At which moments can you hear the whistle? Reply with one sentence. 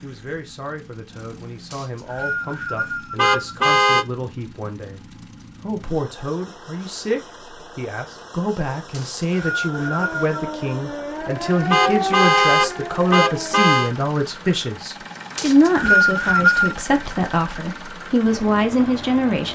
The whistle can be heard from 1.7 to 3.4 s, from 8.9 to 10.3 s and from 15.3 to 16.8 s.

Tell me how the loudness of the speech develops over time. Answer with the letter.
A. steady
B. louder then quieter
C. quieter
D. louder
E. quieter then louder
D.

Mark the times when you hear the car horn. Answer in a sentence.
You can hear the car horn from 3.1 to 4.0 s and from 11.7 to 13.9 s.